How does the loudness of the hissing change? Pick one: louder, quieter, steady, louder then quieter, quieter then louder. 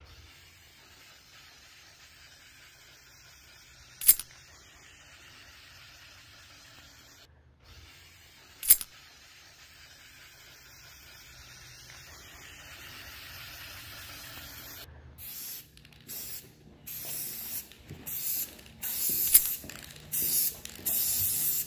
louder.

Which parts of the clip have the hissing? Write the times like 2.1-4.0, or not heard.
0.0-21.6.